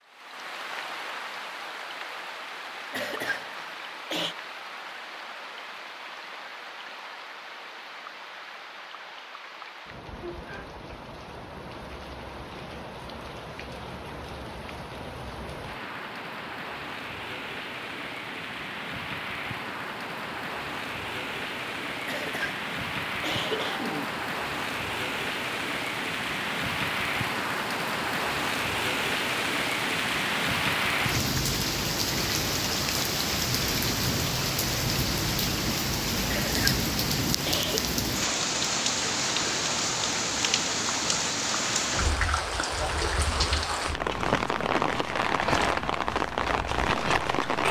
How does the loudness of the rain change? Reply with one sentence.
The volume of the rain goes up.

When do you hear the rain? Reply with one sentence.
You can hear the rain from 0.0 to 47.6 s.